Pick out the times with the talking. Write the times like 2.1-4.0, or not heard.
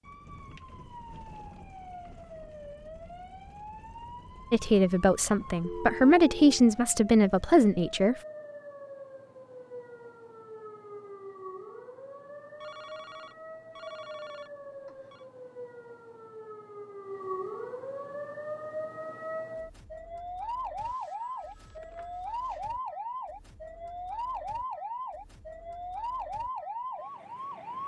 4.5-8.2.